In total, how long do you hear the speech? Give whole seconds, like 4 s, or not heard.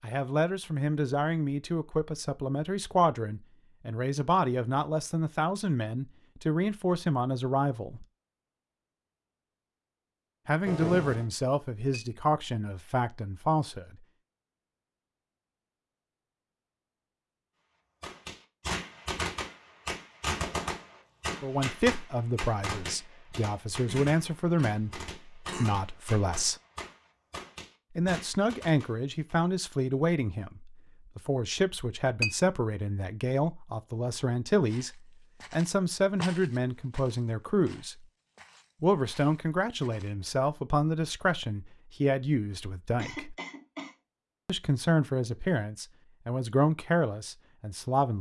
35 s.